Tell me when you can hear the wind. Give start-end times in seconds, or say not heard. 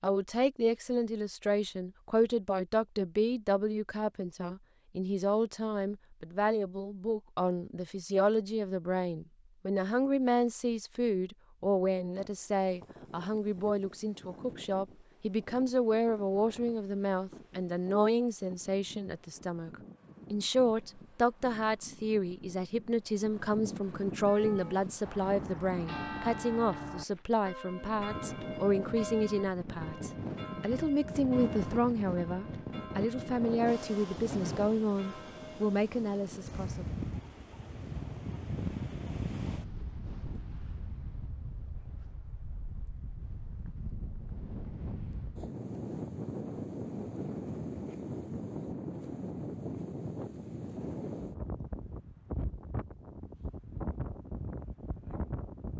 12.1-55.7.